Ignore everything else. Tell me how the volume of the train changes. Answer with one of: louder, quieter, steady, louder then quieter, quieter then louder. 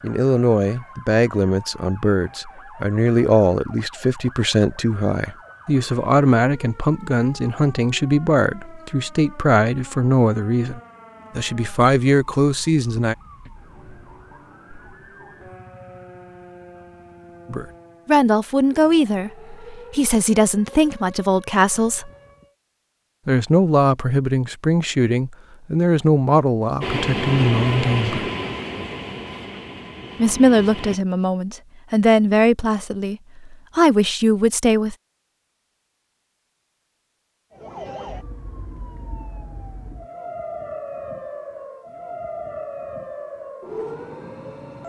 quieter.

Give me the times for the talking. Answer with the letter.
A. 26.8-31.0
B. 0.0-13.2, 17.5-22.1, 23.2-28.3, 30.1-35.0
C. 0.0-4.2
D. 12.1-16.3
B.